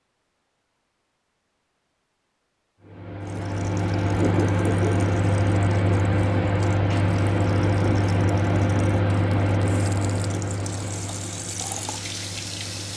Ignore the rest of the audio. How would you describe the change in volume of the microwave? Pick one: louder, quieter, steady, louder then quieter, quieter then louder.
quieter.